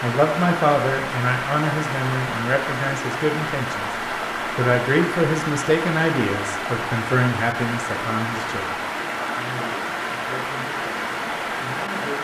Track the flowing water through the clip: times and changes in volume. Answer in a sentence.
The flowing water can be heard from 0.0 to 12.1 s, at a steady volume.